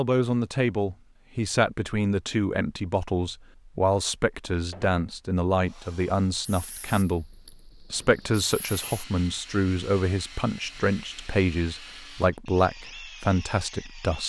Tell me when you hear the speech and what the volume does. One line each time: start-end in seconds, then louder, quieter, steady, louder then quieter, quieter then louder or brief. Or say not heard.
0.0-14.2 steady.